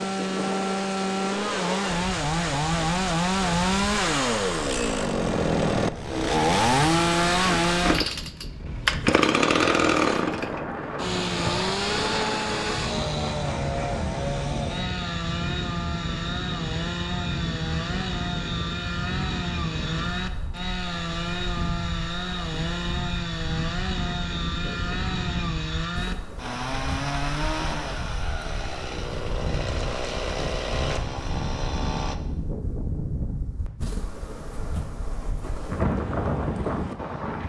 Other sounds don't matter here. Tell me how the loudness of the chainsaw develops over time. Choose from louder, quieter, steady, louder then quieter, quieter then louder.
quieter.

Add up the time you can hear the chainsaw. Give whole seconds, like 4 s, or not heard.
32 s.